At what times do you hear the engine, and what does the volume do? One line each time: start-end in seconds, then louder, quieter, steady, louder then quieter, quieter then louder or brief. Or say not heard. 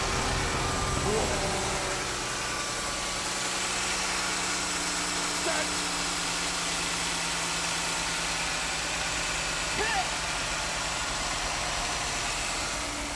0.0-13.1 steady.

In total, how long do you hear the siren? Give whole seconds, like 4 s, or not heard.
2 s.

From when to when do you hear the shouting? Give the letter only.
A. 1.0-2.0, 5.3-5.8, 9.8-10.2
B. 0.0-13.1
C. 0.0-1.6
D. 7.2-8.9
A.